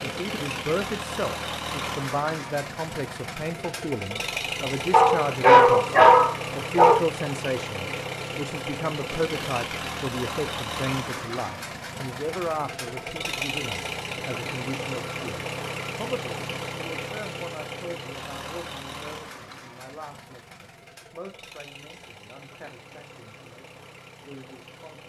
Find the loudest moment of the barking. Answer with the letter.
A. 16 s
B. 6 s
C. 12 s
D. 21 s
B.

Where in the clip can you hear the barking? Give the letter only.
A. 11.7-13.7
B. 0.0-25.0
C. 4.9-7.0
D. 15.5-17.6
C.